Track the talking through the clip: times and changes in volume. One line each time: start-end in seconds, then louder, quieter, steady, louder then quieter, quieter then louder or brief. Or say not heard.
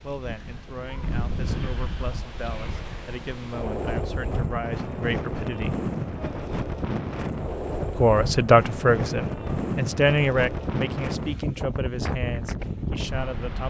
0.0-5.8 louder
8.0-13.6 quieter.